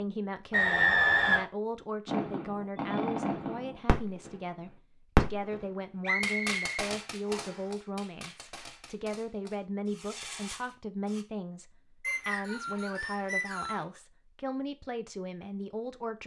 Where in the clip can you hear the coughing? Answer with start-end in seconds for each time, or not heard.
not heard.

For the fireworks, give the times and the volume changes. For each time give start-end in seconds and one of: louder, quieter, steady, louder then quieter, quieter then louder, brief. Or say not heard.
2.0-4.3 brief
5.2-11.2 quieter then louder.